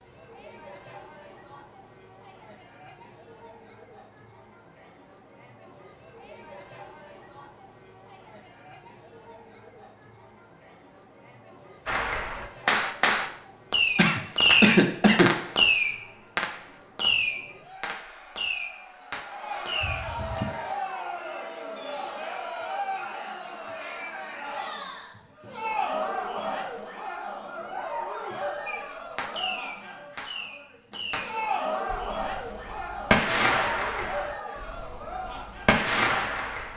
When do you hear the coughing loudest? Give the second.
15 s.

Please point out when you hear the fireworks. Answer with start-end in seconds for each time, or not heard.
11.8-20.4, 28.6-36.7.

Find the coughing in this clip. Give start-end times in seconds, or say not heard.
13.9-15.3, 19.8-20.5.